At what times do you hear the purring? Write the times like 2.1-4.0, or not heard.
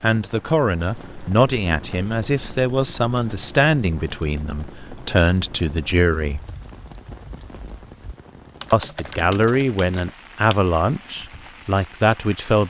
not heard.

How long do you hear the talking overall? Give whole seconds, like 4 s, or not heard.
10 s.